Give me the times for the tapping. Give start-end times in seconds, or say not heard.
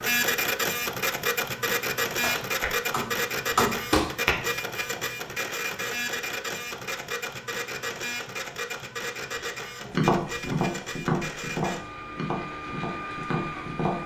2.2-4.3, 9.9-14.0.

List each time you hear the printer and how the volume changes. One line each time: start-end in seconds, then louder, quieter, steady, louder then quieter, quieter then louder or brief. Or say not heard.
0.0-14.0 quieter.